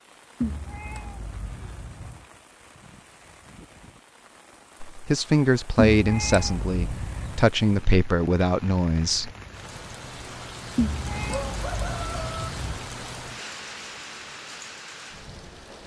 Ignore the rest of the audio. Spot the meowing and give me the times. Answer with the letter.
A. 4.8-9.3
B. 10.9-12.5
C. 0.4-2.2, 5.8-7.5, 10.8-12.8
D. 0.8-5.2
C.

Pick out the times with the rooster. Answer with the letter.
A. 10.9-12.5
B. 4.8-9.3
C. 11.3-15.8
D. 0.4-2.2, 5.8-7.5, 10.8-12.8
A.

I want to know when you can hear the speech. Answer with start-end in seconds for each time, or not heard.
4.8-9.3.